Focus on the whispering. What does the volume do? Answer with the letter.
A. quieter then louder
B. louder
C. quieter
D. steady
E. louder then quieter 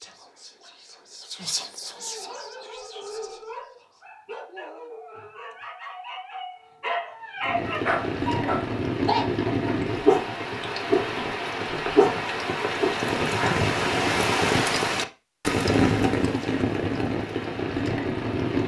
E.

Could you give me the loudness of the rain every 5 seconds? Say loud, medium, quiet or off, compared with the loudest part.
off, loud, loud, loud.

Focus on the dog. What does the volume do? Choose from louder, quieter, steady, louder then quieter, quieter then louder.
louder.